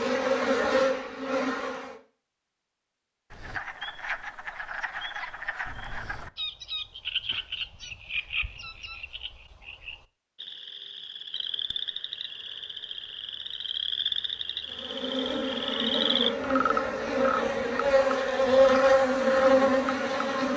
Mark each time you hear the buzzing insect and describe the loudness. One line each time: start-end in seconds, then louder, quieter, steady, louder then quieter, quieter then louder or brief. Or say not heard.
0.0-1.9 brief
14.7-20.5 louder.